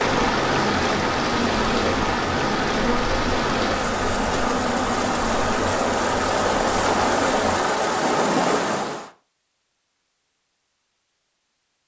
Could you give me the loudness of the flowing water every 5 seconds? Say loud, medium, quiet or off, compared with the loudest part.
loud, loud, off.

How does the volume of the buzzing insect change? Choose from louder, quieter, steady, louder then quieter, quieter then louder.
steady.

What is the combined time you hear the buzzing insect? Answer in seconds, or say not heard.
8 s.